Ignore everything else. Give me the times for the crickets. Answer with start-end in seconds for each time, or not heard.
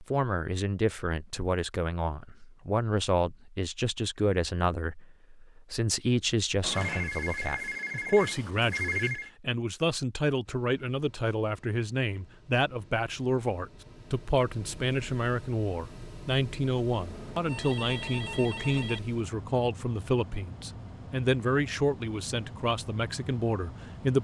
not heard.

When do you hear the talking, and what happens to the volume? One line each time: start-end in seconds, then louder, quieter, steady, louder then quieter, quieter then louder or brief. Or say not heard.
0.0-24.2 steady.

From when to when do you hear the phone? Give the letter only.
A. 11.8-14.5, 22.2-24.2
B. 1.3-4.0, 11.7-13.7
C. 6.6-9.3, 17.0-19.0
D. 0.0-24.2
C.